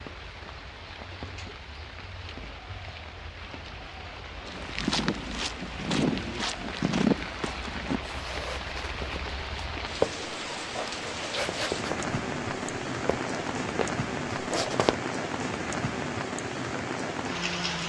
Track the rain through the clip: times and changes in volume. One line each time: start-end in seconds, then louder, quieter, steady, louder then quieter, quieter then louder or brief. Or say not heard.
0.0-17.8 louder.